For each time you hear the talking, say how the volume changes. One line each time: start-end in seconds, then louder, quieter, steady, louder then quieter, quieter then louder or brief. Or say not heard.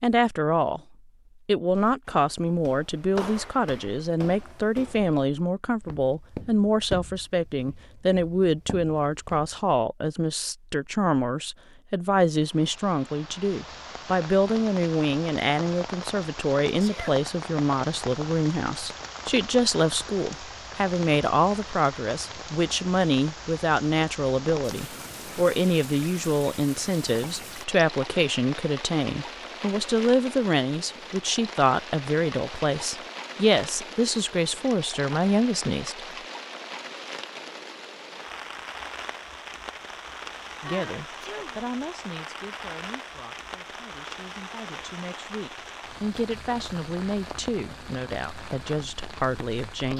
0.0-0.8 brief
1.4-36.0 steady
40.6-49.9 quieter then louder.